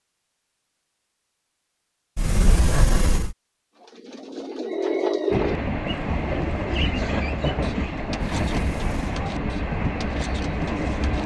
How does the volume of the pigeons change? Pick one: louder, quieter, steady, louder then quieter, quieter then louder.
quieter.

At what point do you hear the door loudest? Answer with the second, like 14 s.
3 s.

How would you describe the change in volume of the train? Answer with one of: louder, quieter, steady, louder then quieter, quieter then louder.
steady.